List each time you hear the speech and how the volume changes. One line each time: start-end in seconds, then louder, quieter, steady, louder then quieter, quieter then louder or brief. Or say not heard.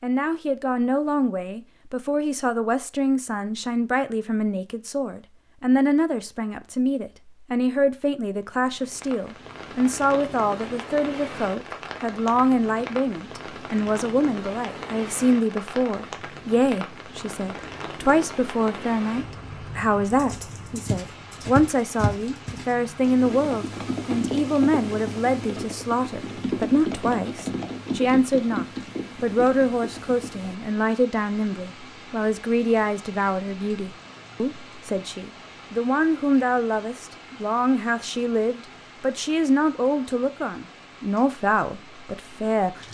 0.0-42.8 steady.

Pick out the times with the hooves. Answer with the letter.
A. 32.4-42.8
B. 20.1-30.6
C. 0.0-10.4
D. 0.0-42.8
B.